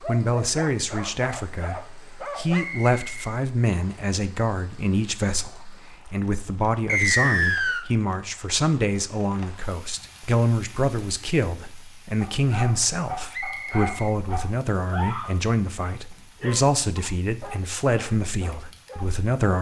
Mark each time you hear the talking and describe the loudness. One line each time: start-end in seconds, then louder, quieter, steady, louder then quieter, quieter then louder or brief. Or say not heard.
0.0-19.5 steady.